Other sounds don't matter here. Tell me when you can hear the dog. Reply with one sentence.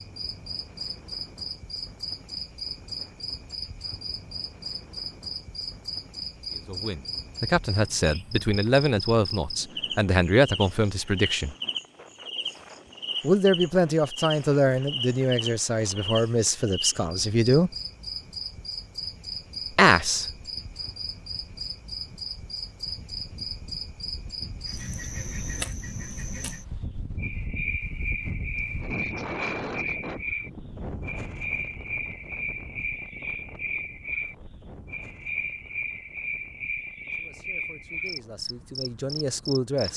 The dog can't be heard in this clip.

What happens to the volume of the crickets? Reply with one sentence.
The loudness of the crickets stays about the same.